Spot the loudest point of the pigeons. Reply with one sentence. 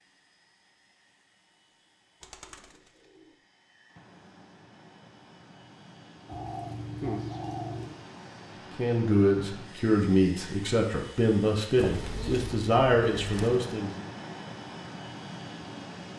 The volume of the pigeons peaks at 7 seconds.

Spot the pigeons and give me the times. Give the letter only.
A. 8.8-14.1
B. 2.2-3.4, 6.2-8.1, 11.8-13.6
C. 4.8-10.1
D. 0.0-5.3
B.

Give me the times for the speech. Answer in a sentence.
The speech can be heard from 8.8 to 14.1 s.